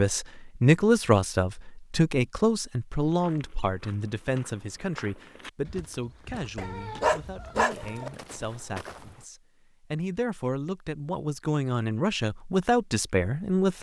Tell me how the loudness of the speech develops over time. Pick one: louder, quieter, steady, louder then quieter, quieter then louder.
quieter then louder.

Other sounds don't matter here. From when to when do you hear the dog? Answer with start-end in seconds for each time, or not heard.
6.5-8.1.